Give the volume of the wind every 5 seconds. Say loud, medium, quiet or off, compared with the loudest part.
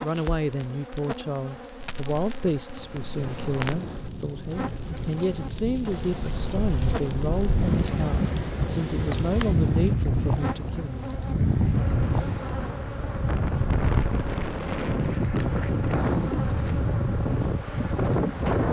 quiet, loud, loud, loud.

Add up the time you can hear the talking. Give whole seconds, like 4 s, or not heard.
11 s.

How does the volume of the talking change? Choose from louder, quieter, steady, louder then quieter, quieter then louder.
steady.